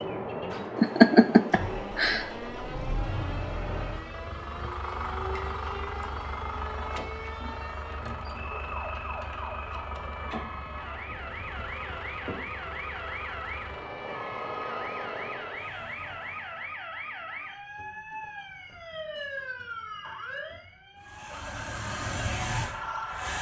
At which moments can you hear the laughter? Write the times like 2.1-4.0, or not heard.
0.8-2.2.